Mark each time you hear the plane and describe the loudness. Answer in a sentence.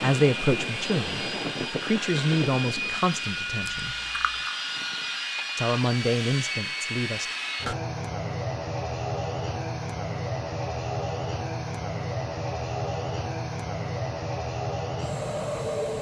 The plane can be heard from 0.0 to 15.9 s, at a steady volume.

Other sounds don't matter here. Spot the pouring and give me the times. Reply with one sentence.
You can hear the pouring from 3.6 to 4.5 s.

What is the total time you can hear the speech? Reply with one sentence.
You can hear the speech for 6 seconds altogether.